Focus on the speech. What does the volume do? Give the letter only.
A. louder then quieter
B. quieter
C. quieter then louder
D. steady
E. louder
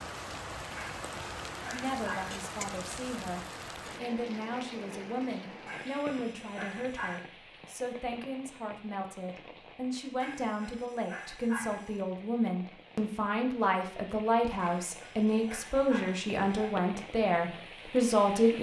E.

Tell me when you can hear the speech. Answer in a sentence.
You can hear the speech from 1.7 to 18.5 s.